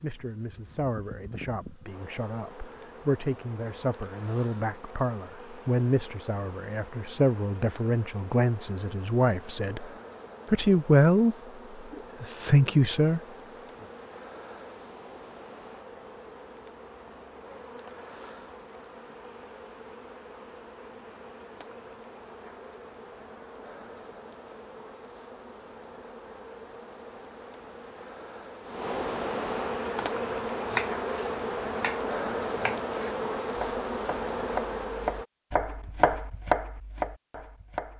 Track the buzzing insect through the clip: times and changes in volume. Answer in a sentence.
You can hear the buzzing insect from 0.0 to 35.2 s, getting louder.